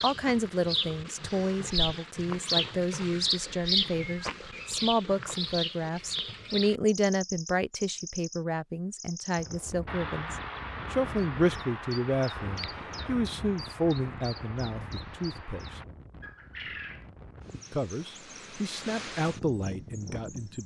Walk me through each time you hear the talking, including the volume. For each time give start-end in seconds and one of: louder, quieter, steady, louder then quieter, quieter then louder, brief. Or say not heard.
0.0-15.8 steady
17.7-20.6 brief.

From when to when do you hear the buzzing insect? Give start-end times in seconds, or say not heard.
not heard.